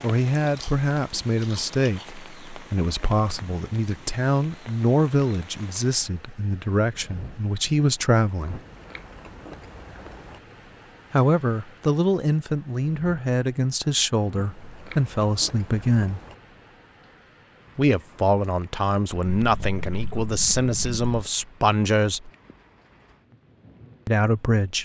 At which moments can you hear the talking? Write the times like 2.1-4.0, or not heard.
0.0-8.6, 11.1-16.2, 17.8-22.3, 24.1-24.8.